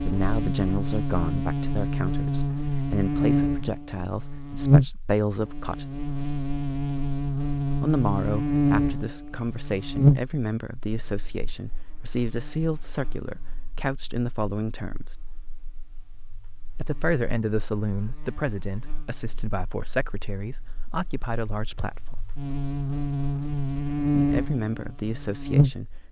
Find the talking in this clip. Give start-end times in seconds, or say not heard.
0.0-5.8, 7.8-15.2, 16.8-22.1, 24.1-26.0.